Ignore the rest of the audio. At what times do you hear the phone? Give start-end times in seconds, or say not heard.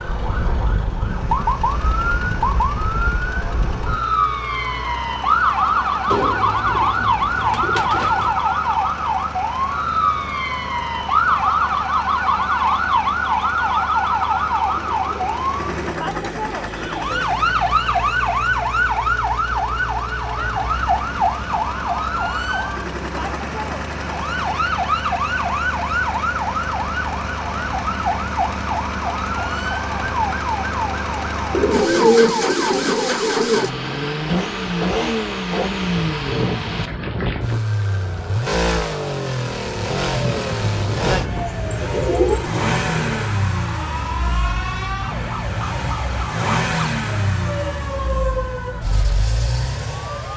not heard.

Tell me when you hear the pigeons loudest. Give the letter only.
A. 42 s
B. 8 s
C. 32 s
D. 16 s
C.